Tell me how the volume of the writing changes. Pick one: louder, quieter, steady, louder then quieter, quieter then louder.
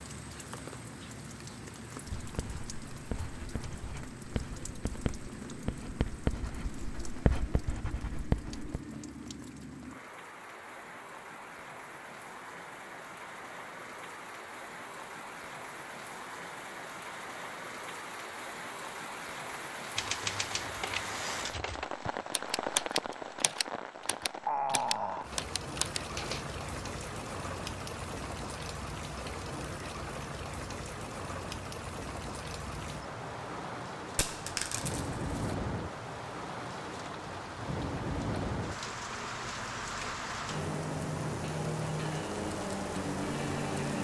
louder.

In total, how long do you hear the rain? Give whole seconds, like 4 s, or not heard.
44 s.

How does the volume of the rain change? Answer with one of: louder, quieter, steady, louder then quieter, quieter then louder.
louder.